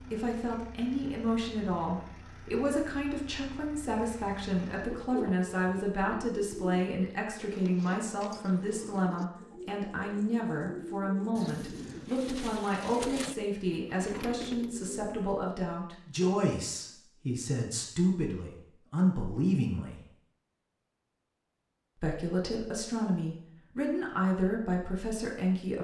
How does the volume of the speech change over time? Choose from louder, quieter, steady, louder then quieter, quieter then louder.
steady.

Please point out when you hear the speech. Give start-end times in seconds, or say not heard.
0.0-20.0, 22.0-25.7.